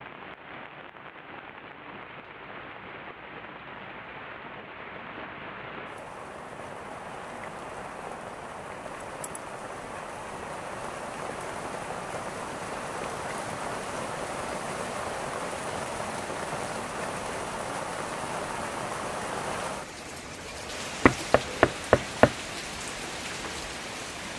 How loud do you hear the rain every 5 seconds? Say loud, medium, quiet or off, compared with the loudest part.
medium, medium, loud, loud, loud.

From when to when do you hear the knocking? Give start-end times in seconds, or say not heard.
21.1-22.4.